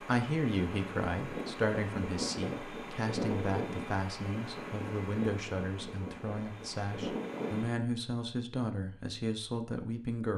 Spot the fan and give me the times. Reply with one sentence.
The fan can be heard from 0.0 to 7.8 s.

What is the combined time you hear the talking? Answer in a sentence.
The talking can be heard for 10 seconds in total.